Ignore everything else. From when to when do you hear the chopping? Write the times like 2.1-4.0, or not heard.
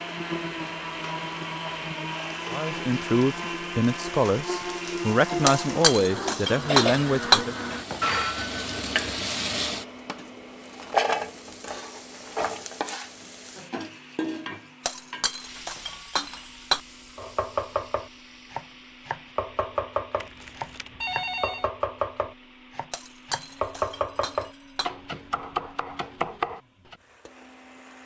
17.1-26.9.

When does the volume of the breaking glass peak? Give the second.
7 s.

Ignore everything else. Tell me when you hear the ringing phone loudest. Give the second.
8 s.